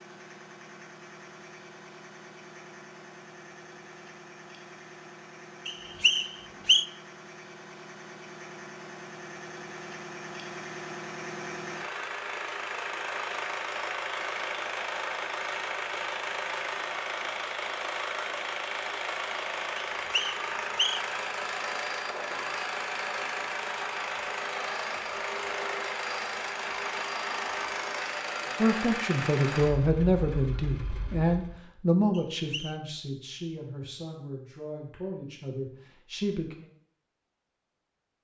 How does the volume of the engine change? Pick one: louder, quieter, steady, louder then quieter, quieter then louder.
louder.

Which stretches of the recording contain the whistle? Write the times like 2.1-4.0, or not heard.
5.7-6.8, 19.8-21.1, 32.1-32.8.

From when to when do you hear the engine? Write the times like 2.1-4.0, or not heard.
0.0-31.6.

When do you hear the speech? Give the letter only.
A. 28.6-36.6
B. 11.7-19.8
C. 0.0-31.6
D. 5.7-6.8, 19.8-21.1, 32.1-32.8
A.